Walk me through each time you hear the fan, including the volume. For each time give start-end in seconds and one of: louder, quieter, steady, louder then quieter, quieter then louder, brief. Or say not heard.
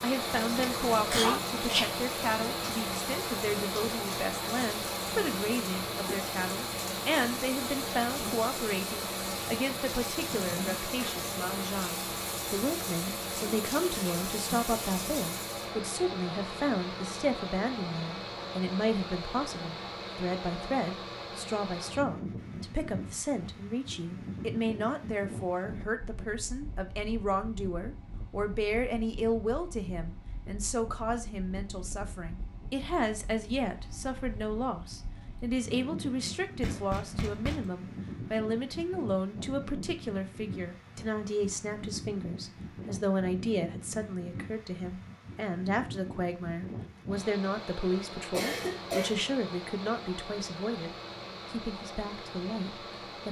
0.0-53.2 quieter.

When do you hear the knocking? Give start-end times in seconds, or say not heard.
36.6-37.7.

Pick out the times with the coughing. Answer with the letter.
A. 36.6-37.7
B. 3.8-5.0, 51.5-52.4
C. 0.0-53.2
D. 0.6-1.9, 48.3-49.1
D.